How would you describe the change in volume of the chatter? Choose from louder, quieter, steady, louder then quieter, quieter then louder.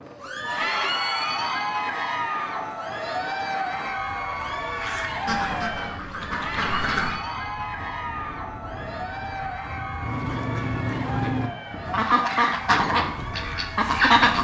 quieter.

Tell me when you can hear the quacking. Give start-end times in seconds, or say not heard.
4.8-7.2, 10.0-14.3.